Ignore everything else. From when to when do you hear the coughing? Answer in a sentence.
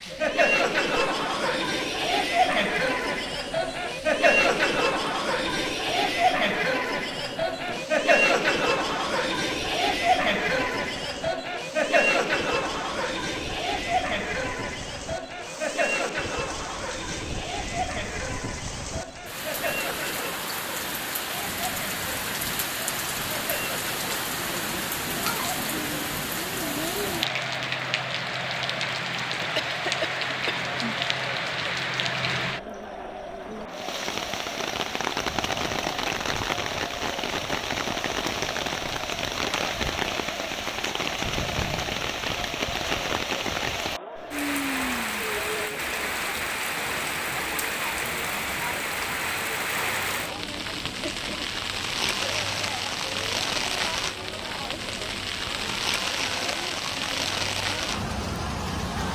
The coughing can be heard from 29.6 to 30.9 s.